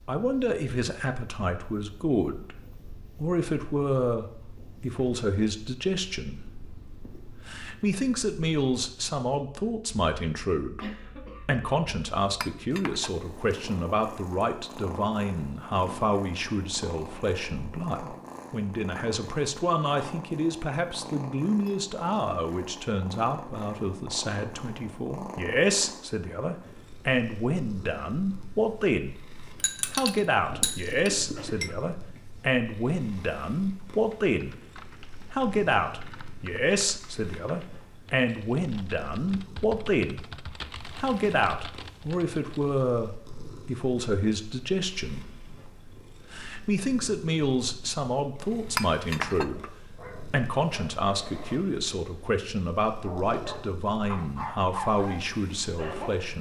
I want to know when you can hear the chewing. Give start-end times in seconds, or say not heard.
not heard.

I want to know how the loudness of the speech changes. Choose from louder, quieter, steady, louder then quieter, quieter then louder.
steady.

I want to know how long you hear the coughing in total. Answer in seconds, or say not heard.
2 s.